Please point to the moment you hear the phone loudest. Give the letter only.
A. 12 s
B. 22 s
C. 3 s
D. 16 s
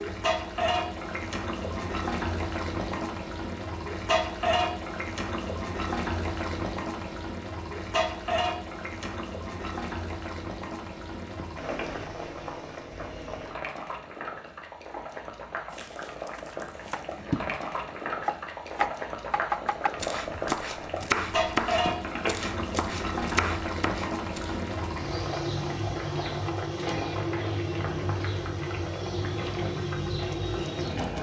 B.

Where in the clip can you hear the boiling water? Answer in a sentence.
The boiling water can be heard from 0.0 to 31.1 s.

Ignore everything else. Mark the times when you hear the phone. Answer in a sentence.
You can hear the phone from 11.3 to 11.8 s and from 21.9 to 22.4 s.